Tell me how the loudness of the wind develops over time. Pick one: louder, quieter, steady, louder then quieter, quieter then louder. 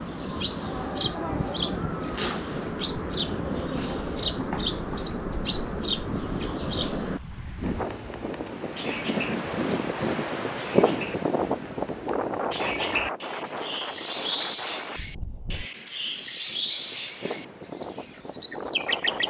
louder then quieter.